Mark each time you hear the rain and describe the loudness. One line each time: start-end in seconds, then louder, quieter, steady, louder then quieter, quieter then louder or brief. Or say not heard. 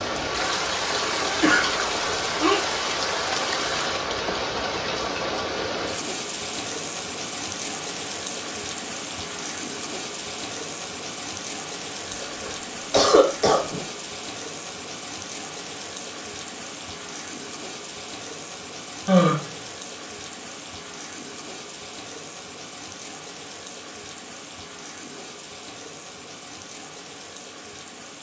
0.0-28.1 quieter.